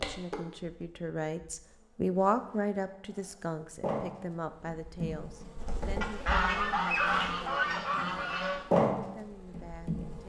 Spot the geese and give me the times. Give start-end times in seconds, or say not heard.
6.0-8.7.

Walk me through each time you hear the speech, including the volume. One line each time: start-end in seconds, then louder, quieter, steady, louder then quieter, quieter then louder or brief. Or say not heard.
0.0-10.2 quieter.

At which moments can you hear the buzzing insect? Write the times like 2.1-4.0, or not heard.
0.0-10.2.